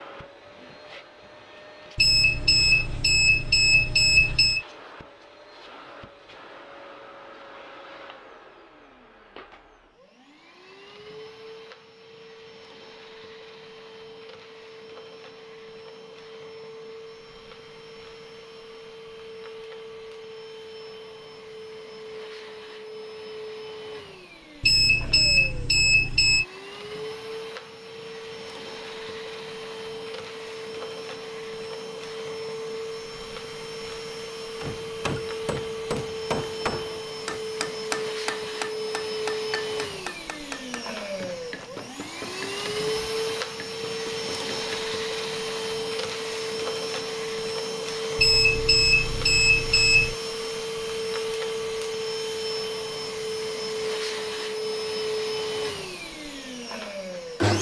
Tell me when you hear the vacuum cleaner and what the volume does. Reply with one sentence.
You can hear the vacuum cleaner from 0.0 to 57.5 s, getting louder.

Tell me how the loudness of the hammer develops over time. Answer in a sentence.
The volume of the hammer goes down.